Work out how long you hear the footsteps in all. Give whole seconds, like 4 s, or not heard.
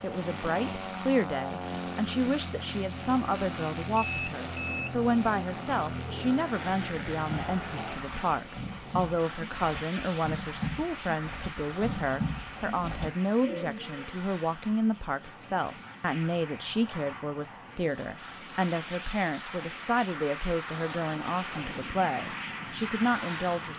not heard.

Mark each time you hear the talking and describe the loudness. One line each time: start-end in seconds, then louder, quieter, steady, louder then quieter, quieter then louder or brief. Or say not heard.
0.0-23.7 steady.